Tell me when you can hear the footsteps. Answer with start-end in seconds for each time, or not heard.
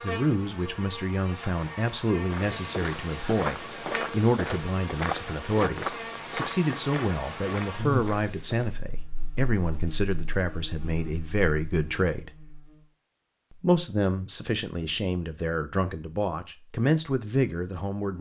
2.2-8.8.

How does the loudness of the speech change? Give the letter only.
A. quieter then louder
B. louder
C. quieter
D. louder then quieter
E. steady
E.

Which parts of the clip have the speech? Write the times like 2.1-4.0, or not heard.
0.0-12.3, 13.5-18.1.